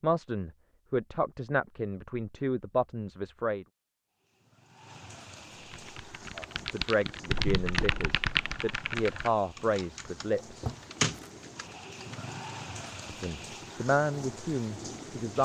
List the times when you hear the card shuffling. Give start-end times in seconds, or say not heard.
10.6-11.3.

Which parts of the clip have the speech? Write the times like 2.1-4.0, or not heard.
0.0-3.6, 6.3-10.8, 13.1-15.4.